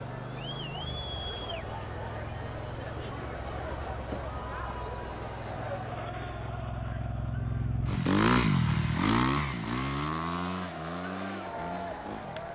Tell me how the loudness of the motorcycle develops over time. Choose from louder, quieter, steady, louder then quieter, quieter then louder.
louder then quieter.